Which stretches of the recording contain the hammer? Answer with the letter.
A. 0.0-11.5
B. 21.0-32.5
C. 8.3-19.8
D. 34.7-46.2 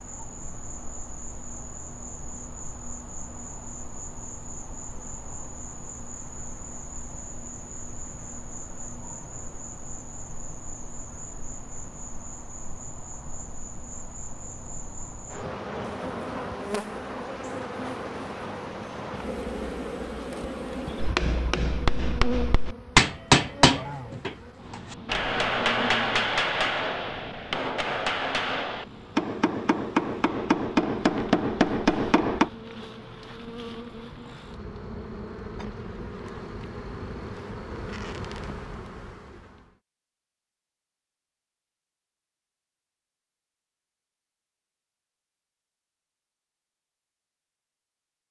B.